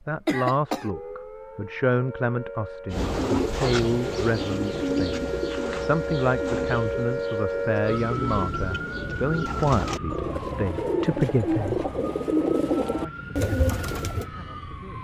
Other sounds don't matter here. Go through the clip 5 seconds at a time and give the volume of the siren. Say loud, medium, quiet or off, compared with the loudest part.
medium, loud, medium.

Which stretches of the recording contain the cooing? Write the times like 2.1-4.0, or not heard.
2.9-14.3.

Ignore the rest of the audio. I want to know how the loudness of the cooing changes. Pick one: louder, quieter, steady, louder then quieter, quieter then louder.
quieter then louder.